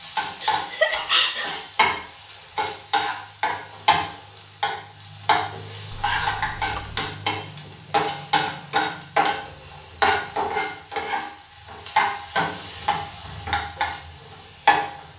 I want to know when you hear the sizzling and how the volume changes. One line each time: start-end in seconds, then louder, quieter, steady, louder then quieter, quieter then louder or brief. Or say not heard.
0.0-15.1 steady.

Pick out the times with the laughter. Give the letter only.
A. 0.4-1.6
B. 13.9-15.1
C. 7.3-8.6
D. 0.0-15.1
A.